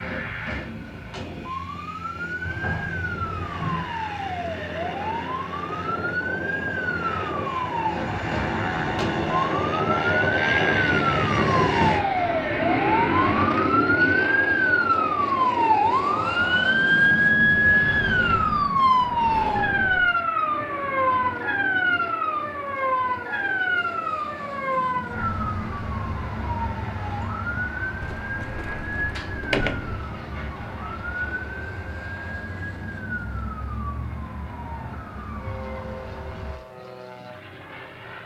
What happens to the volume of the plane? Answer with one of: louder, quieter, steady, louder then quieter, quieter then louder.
louder then quieter.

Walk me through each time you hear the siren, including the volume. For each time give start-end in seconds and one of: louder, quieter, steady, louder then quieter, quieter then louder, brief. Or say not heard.
0.0-36.6 louder then quieter.